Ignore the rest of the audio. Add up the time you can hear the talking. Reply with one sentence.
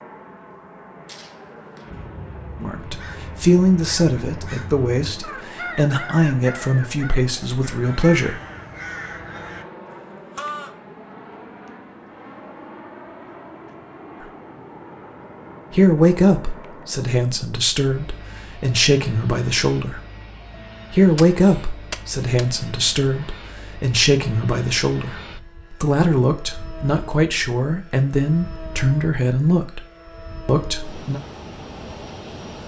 The talking can be heard for 20 seconds in total.